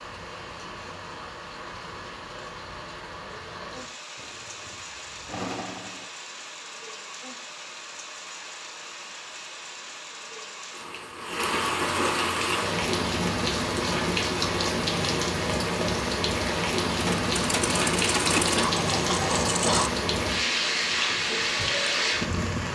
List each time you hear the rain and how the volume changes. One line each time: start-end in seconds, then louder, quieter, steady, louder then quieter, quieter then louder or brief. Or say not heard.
0.0-22.7 louder.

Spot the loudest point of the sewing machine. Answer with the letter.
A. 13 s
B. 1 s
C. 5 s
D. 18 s
D.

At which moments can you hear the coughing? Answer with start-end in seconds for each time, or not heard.
18.6-19.9.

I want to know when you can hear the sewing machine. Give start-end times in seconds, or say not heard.
4.2-6.1, 16.9-19.9.